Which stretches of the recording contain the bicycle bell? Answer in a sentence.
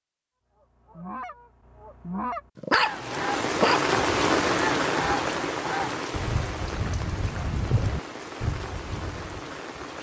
You can't hear the bicycle bell here.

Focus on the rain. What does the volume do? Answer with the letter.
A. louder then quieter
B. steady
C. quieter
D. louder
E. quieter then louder
C.